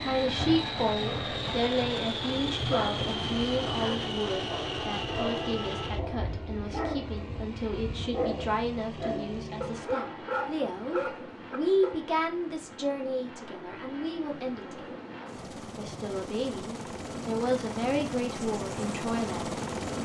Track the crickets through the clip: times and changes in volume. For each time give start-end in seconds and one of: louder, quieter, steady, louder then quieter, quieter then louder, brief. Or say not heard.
not heard.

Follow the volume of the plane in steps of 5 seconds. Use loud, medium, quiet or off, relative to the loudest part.
loud, medium, medium, loud.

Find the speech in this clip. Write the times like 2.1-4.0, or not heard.
0.1-20.0.